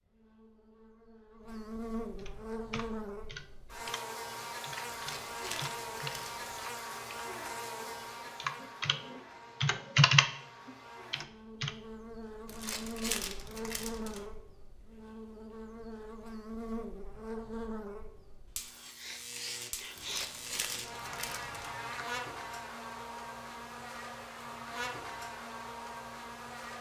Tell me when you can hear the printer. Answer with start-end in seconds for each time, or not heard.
not heard.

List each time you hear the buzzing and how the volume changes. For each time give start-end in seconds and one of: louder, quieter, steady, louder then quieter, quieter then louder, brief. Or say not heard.
0.0-26.7 steady.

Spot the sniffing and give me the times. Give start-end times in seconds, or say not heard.
18.9-20.3.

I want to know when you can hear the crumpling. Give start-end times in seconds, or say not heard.
4.9-6.4, 12.4-14.2, 19.9-21.8.